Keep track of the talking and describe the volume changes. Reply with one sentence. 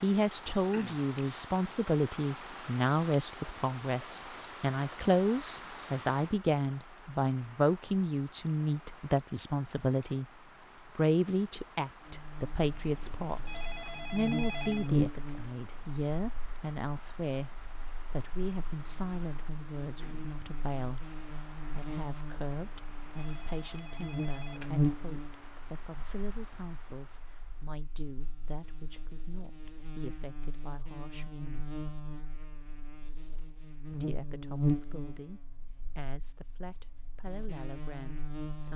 The loudness of the talking goes down.